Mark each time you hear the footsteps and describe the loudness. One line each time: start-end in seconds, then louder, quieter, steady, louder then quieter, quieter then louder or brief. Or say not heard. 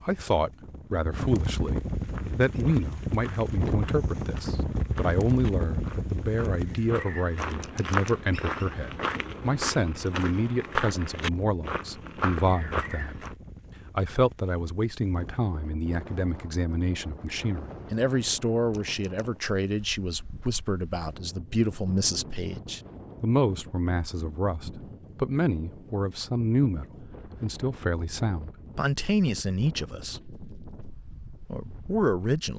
2.0-13.3 louder.